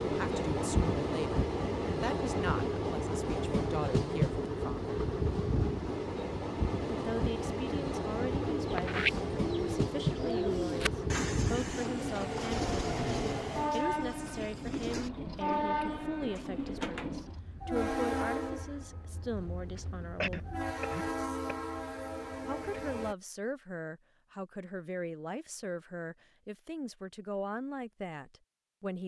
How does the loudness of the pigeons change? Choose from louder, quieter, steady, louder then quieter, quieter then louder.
quieter.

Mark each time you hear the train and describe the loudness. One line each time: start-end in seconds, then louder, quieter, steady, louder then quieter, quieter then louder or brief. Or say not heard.
0.0-23.1 quieter.